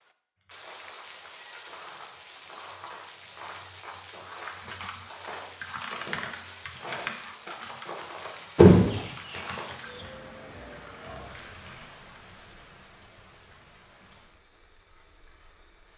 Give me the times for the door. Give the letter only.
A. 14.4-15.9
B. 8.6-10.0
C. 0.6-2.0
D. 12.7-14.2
B.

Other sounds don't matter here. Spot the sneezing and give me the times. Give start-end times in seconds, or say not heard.
not heard.